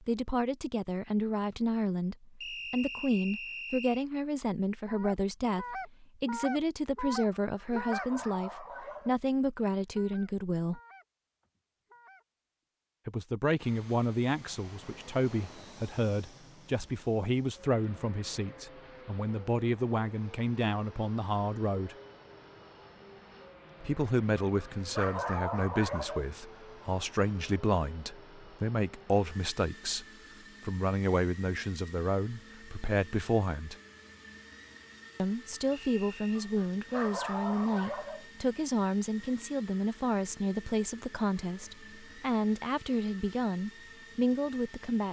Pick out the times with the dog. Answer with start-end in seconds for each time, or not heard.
7.4-9.2, 24.4-26.3, 36.4-38.2.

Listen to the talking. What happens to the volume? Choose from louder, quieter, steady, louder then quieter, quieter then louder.
steady.